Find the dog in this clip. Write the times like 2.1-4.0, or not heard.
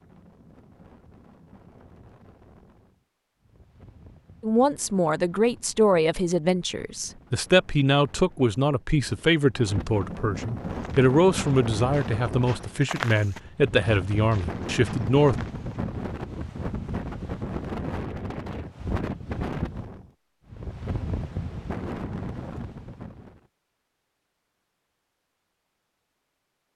not heard.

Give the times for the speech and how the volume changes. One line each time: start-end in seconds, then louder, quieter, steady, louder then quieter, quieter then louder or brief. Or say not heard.
4.4-15.4 steady.